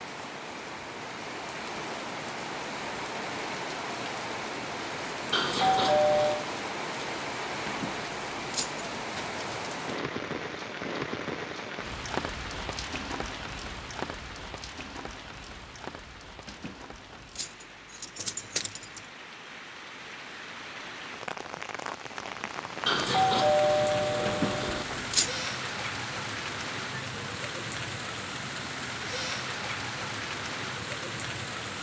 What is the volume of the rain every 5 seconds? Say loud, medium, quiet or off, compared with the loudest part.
loud, loud, loud, medium, loud, loud, loud.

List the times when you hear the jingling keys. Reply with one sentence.
The jingling keys can be heard from 7.7 to 8.8 s, from 16.4 to 19.1 s and from 24.2 to 25.3 s.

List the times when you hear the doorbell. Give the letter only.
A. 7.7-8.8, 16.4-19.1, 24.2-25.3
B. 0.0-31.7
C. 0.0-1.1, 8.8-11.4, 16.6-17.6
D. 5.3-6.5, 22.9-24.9
D.